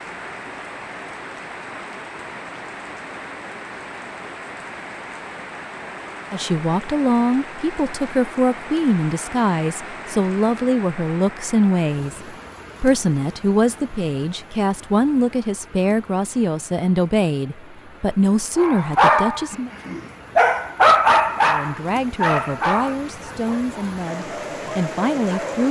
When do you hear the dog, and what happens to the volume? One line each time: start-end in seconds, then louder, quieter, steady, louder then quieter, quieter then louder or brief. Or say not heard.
18.6-25.6 quieter.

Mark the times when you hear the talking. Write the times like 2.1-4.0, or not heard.
6.3-19.7, 21.4-25.6.